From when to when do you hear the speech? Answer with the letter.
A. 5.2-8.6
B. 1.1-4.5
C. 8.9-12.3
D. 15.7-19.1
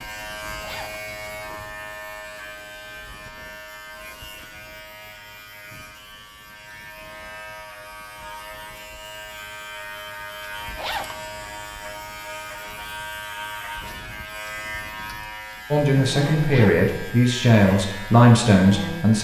D.